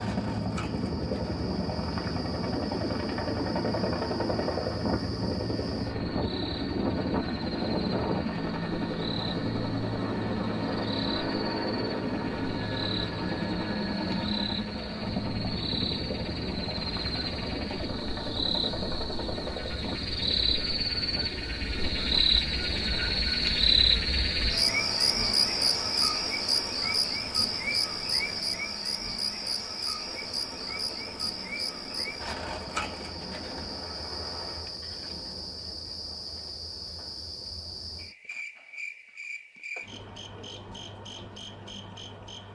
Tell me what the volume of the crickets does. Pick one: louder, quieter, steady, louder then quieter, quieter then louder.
louder then quieter.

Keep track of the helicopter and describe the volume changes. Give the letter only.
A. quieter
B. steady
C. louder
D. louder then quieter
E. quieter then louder
A.